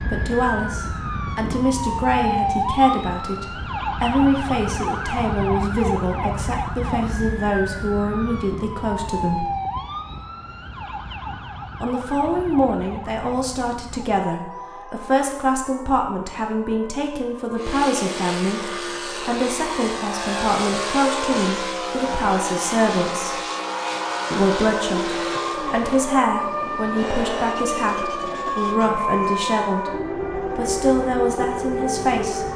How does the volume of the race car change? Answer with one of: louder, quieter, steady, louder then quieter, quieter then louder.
quieter.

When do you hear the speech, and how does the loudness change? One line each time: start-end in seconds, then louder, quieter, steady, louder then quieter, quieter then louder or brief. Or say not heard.
0.0-9.5 steady
11.8-23.4 steady
24.3-32.5 steady.